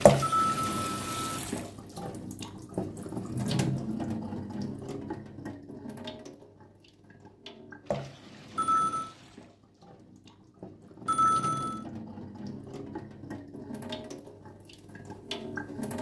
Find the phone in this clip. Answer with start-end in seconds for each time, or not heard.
0.2-1.4, 8.6-9.1, 11.1-11.8.